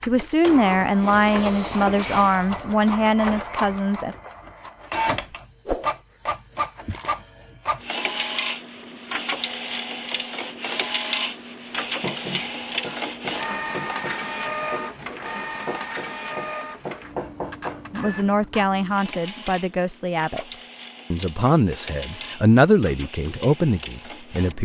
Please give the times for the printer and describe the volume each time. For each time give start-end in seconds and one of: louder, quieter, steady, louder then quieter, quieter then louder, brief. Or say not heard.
0.0-24.5 quieter.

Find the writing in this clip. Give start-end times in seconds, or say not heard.
11.8-18.4.